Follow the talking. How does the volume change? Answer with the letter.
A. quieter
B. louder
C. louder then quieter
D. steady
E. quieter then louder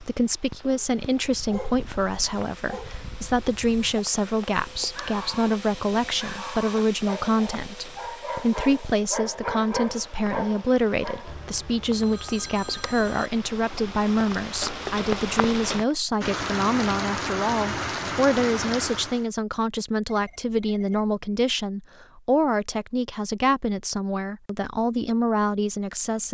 D.